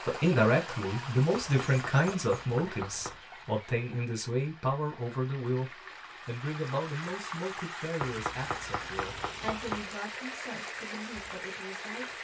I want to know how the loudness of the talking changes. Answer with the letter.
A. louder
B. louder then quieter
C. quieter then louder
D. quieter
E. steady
D.